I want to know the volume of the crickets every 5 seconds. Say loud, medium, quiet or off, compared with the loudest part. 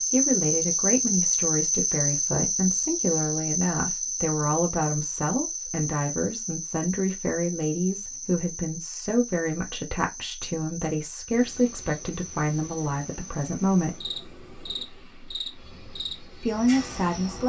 loud, medium, quiet, quiet.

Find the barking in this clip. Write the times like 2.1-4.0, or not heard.
not heard.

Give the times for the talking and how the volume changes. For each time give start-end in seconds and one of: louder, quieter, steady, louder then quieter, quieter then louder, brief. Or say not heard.
0.1-14.1 steady
16.4-17.4 brief.